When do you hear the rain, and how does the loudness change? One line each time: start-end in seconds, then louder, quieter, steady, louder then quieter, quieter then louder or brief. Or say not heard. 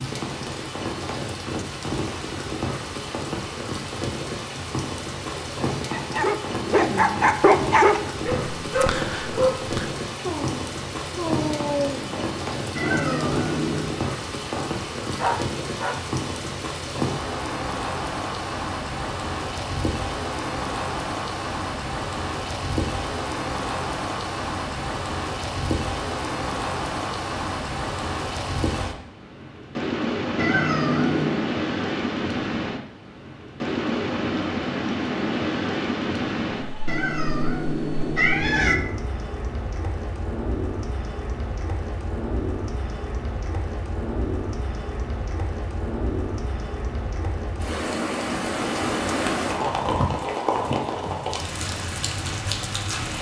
0.0-53.1 steady.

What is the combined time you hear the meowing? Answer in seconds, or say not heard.
4 s.